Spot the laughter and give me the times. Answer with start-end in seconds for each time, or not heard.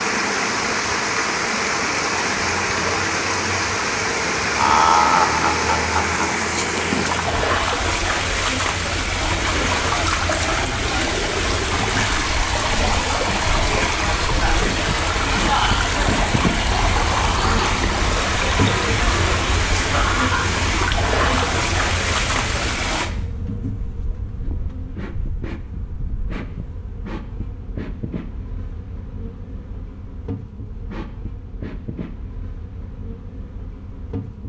4.5-6.2.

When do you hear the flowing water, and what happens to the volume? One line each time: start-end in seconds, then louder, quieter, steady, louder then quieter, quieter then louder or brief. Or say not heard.
0.0-23.1 steady.